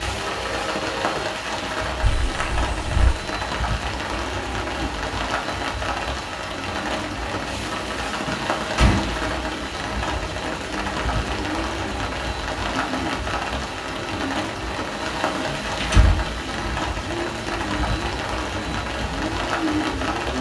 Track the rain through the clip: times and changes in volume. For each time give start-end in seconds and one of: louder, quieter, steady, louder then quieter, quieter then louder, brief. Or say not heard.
0.0-20.3 steady.